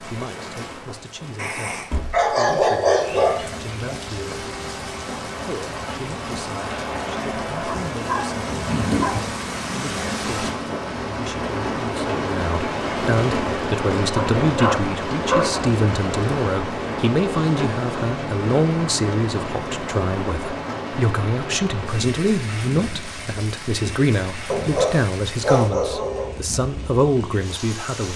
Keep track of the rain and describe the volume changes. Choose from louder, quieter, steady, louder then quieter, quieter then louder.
louder then quieter.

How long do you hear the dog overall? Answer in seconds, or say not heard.
7 s.